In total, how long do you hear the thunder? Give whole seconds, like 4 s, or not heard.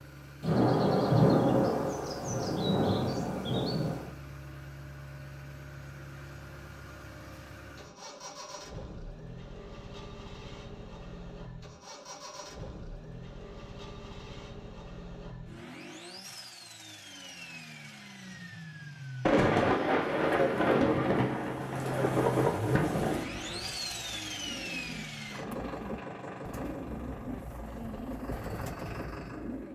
8 s.